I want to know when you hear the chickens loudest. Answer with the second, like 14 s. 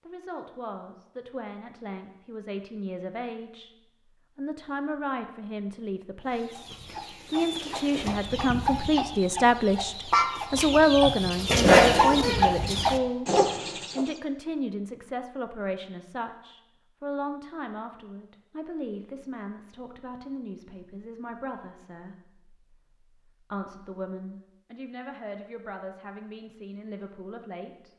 12 s.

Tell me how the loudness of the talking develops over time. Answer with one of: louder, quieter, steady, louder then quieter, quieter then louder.
louder then quieter.